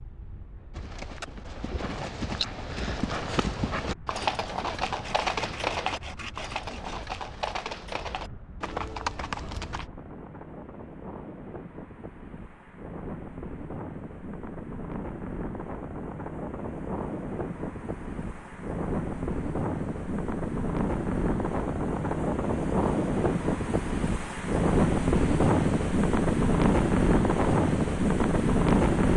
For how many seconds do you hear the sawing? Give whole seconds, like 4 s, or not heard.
2 s.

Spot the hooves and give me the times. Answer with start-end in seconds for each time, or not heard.
0.7-9.9.